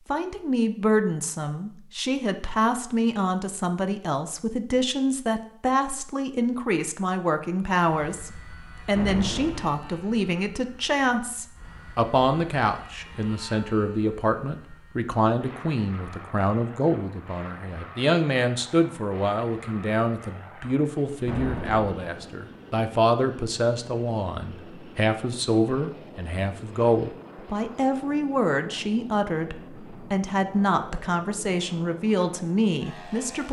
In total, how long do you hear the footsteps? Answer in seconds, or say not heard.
not heard.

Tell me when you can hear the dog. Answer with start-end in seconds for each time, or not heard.
not heard.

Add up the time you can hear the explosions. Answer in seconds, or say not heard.
2 s.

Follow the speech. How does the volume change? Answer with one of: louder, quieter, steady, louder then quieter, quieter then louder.
steady.